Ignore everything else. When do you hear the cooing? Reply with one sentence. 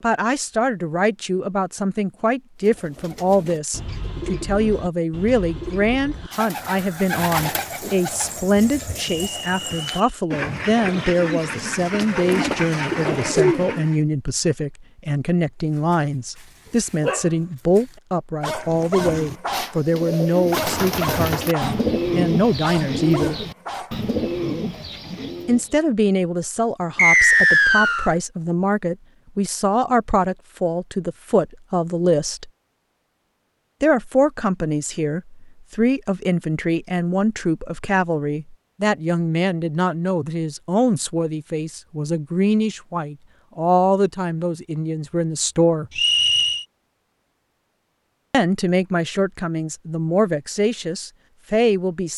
You can hear the cooing from 2.6 to 13.9 s and from 18.6 to 25.8 s.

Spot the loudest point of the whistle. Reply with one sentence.
The loudest moment of the whistle is at 27 seconds.